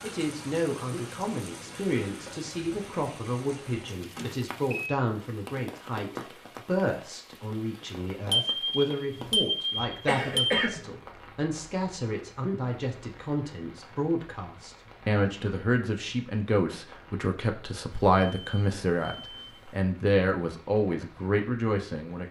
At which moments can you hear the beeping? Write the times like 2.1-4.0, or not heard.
4.0-5.0, 8.3-10.7, 18.1-19.9.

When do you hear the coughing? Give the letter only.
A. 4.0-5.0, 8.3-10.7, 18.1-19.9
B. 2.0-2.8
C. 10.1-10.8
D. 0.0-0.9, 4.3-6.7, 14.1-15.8
C.